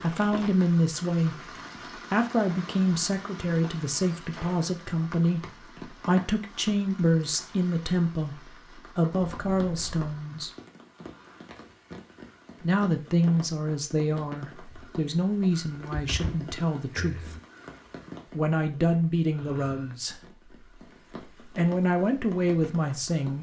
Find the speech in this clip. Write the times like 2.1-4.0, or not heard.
0.0-10.5, 12.6-17.4, 18.3-20.2, 21.4-23.3.